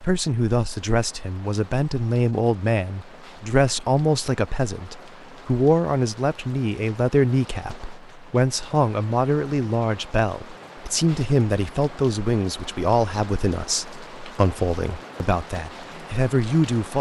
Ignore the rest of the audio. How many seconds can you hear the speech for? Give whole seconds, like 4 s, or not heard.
17 s.